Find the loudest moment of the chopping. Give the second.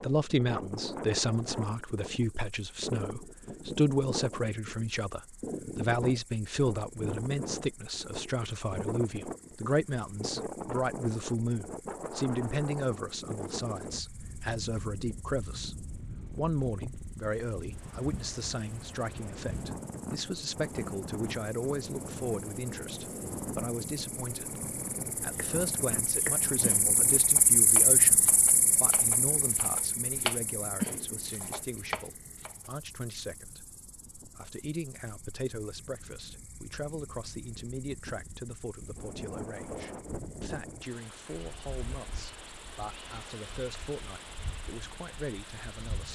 31 s.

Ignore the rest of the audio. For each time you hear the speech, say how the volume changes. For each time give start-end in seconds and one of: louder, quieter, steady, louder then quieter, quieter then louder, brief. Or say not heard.
0.0-46.1 quieter.